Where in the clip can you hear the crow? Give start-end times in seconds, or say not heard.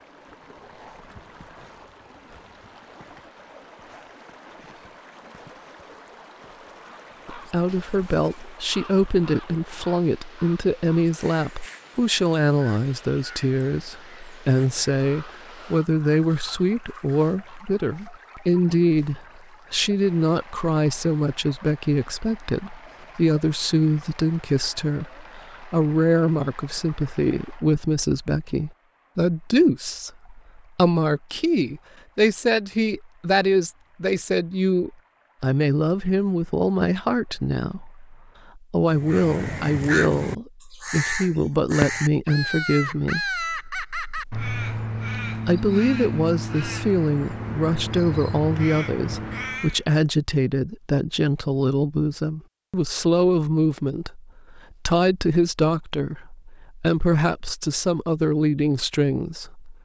6.8-17.6, 38.9-49.8.